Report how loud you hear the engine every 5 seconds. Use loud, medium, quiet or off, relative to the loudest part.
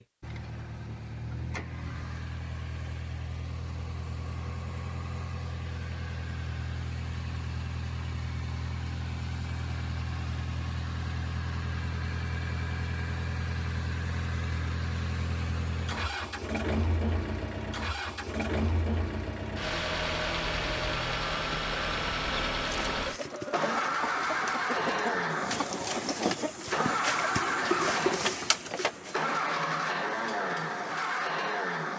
medium, medium, medium, loud, loud, loud, loud.